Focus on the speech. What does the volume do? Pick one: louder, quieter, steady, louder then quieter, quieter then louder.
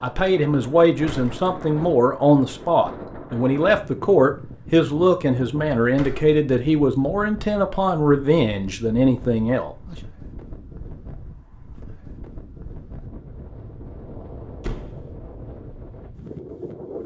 steady.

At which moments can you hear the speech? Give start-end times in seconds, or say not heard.
0.0-9.9.